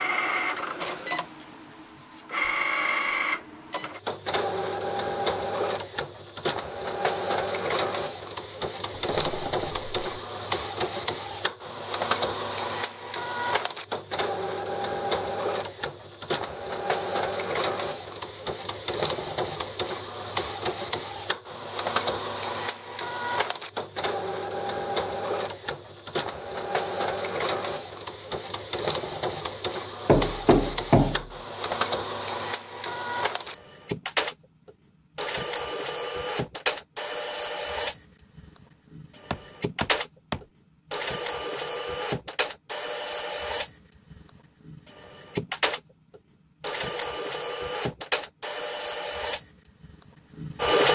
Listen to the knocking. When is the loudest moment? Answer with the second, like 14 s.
31 s.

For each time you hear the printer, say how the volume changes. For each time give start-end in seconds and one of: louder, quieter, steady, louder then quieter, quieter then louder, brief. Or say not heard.
0.0-50.8 steady.